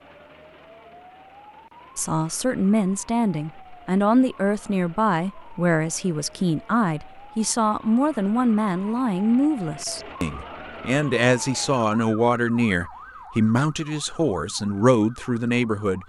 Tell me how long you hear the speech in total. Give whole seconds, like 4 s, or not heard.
14 s.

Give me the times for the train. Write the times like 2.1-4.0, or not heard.
not heard.